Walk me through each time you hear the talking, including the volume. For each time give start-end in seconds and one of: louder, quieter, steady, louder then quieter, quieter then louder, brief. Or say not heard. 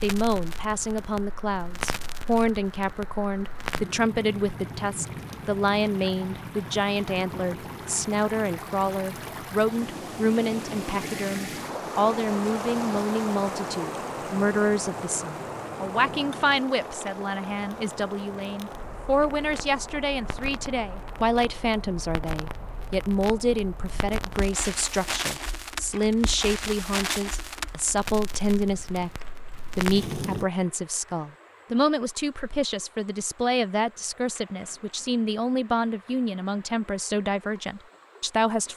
0.0-38.7 steady.